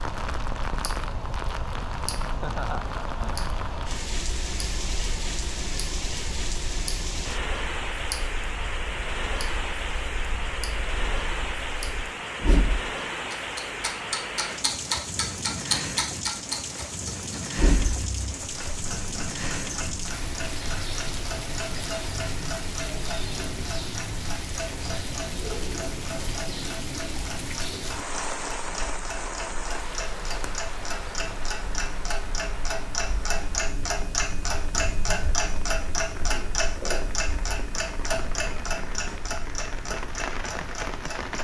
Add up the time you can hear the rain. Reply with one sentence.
The rain can be heard for 41 seconds in total.